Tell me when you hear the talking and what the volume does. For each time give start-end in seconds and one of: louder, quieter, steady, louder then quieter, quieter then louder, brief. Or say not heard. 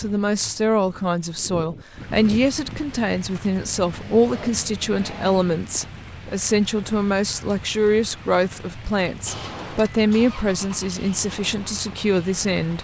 0.0-12.7 steady.